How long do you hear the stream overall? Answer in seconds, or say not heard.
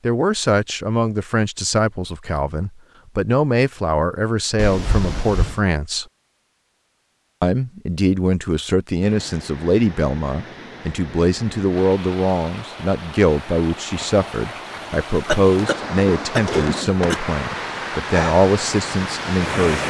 11 s.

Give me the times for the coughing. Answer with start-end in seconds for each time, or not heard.
4.5-5.6, 15.2-17.2.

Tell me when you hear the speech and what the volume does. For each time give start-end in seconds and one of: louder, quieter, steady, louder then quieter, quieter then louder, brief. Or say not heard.
0.0-6.0 steady
7.4-19.8 steady.